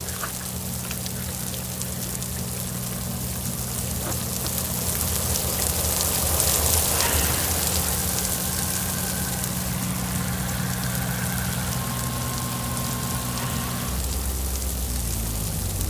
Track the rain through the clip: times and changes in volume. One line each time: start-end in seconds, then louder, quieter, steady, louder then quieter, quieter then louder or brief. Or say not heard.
0.0-15.8 louder then quieter.